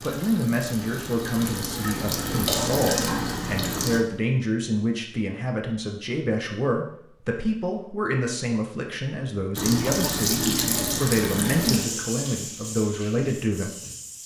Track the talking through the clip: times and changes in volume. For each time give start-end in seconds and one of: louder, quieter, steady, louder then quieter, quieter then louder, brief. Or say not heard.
0.0-13.7 steady.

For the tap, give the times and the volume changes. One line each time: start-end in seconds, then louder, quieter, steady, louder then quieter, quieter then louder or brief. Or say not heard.
0.0-4.0 louder
9.6-14.2 quieter.